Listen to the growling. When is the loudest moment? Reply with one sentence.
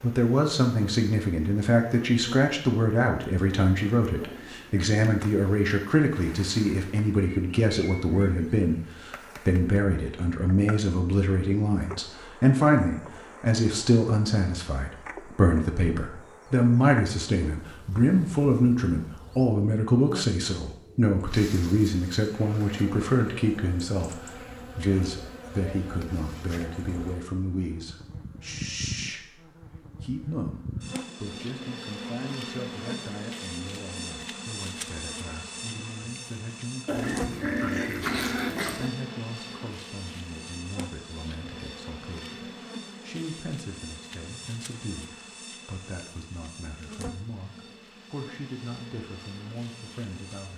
The volume of the growling peaks at 38 seconds.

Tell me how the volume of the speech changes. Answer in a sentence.
The volume of the speech goes down.